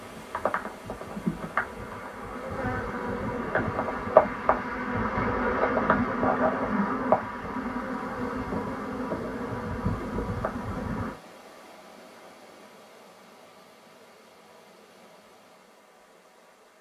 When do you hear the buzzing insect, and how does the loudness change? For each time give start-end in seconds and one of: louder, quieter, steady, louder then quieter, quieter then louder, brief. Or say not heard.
0.0-11.2 louder then quieter.